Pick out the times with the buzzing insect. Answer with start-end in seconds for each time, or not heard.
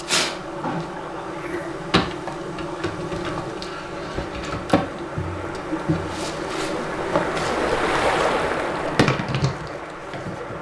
0.0-10.5.